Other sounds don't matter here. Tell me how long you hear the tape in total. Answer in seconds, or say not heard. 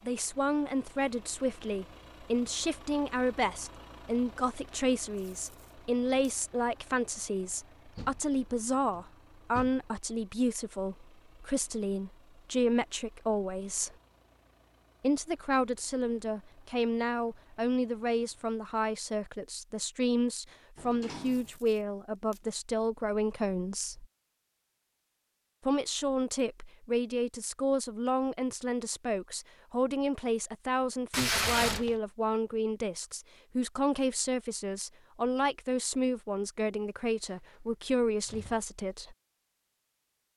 3 s.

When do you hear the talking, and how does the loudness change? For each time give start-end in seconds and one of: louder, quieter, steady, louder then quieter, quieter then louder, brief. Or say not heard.
0.1-13.9 steady
15.0-24.1 steady
25.6-39.1 steady.